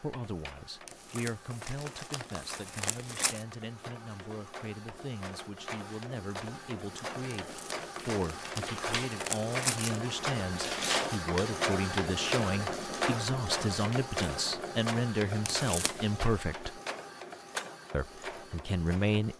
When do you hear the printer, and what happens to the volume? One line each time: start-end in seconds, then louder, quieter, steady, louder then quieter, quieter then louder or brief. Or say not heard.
0.0-19.3 louder then quieter.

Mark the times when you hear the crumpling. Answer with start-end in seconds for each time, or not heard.
0.8-3.5, 7.4-10.0, 15.4-16.0.